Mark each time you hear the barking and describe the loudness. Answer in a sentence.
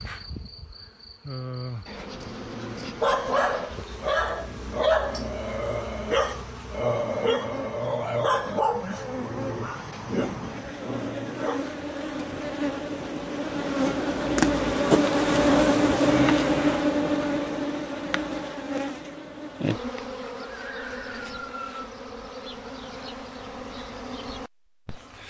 The barking can be heard from 2.1 to 11.7 s, getting quieter.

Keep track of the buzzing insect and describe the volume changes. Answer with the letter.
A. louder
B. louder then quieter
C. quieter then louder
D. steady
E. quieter
B.